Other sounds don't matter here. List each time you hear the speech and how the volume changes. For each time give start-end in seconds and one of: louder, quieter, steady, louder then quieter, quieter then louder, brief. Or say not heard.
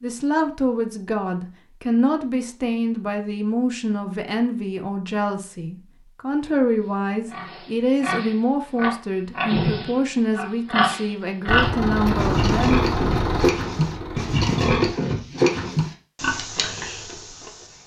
0.0-12.8 steady.